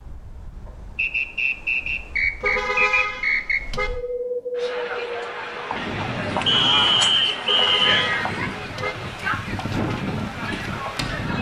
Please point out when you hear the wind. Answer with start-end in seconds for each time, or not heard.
0.0-11.3.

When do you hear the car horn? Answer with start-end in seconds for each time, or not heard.
2.4-3.9, 7.5-8.9.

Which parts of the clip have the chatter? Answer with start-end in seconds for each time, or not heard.
4.5-11.3.